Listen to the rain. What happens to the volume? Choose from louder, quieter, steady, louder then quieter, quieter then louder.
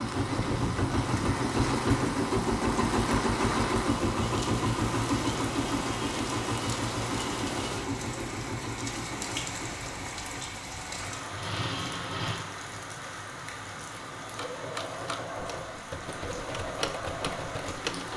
quieter.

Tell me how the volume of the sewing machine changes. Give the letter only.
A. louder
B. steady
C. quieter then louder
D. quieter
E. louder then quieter
D.